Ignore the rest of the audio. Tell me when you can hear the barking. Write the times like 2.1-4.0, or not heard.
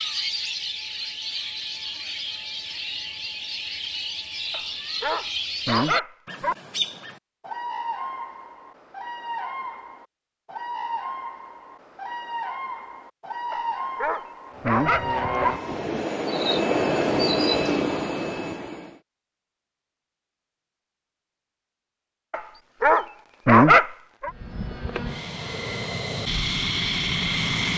4.5-6.5, 13.5-15.6, 22.3-24.3.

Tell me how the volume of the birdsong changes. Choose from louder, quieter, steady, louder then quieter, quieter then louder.
steady.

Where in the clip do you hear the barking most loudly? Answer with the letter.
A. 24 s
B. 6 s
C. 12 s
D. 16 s
A.